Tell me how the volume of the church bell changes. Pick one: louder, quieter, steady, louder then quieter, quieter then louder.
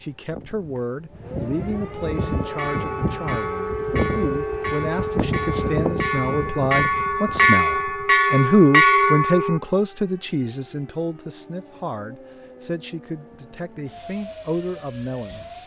louder.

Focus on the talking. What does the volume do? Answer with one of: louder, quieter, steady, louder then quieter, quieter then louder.
louder then quieter.